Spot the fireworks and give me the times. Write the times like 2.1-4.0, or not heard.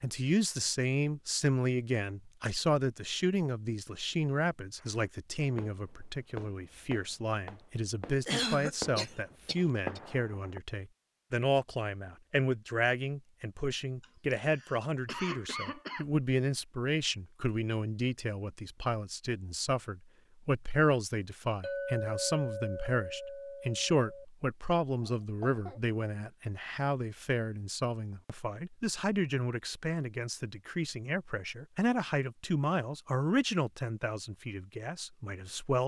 4.8-10.6.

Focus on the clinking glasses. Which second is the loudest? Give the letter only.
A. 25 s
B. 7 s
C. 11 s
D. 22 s
D.